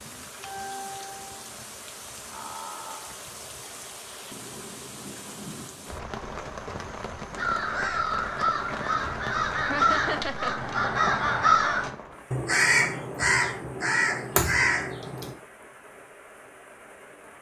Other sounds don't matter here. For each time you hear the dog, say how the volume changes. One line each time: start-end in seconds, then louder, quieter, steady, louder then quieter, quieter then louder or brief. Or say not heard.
not heard.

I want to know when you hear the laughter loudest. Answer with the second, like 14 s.
10 s.